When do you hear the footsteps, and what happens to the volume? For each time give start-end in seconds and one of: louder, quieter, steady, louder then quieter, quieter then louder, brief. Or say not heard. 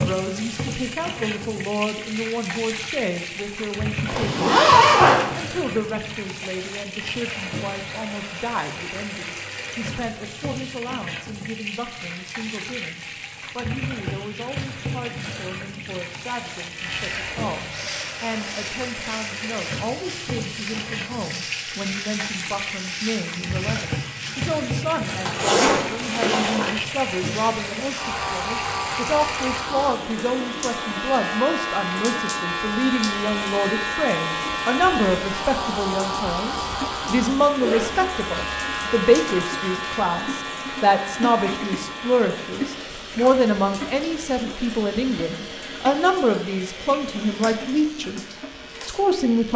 not heard.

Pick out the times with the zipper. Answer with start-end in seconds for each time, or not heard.
4.0-5.2, 25.2-26.7, 37.6-38.6.